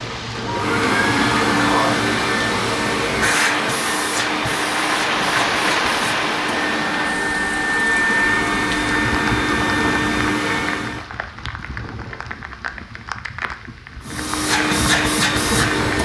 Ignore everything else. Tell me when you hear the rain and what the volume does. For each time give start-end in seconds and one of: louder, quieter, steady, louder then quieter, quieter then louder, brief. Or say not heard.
0.0-16.0 louder then quieter.